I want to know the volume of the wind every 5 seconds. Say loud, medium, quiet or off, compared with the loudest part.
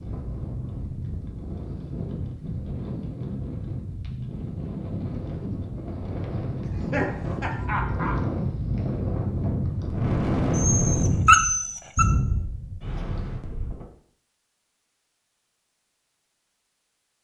medium, loud, loud, off.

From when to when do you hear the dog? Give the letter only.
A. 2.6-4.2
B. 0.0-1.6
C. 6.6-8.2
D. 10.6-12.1
D.